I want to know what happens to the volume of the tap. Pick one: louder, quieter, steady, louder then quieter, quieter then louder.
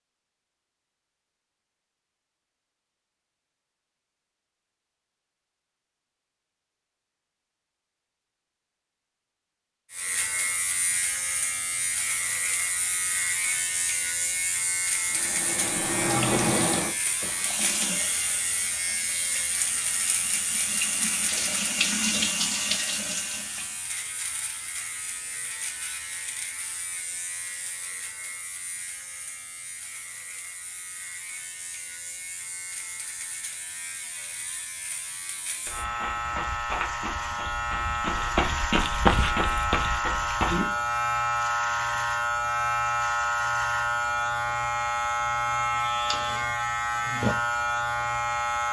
quieter then louder.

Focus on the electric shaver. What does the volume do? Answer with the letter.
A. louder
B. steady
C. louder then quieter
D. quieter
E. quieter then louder
E.